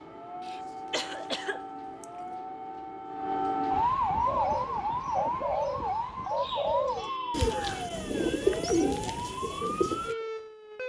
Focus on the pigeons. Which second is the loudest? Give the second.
9 s.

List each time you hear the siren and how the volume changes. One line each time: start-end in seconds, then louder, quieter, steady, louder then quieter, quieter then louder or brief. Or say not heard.
0.0-10.8 louder then quieter.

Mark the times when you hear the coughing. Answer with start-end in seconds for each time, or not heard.
0.4-2.4.